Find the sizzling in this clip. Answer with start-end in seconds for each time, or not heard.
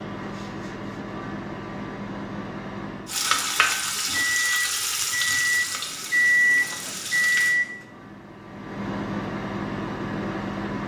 3.0-7.5.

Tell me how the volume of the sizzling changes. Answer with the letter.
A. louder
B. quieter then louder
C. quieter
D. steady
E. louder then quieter
C.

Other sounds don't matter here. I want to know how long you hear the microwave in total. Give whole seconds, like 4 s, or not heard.
11 s.